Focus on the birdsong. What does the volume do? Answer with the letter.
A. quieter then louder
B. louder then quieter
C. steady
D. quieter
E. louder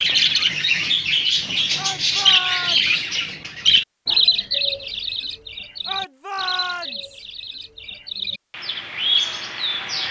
A.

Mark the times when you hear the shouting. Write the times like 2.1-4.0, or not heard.
1.8-2.9, 5.8-7.2.